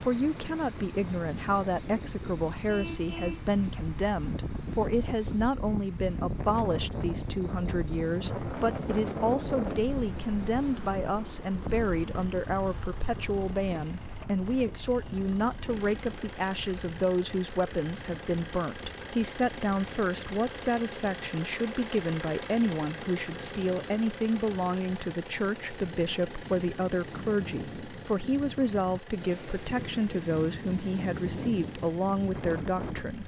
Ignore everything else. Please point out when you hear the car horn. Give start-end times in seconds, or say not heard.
2.6-3.5.